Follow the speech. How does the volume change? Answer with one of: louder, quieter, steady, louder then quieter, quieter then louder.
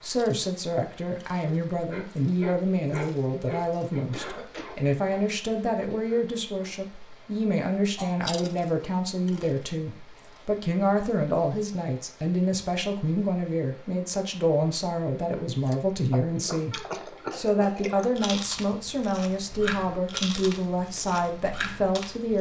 steady.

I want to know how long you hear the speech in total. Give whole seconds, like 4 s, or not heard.
22 s.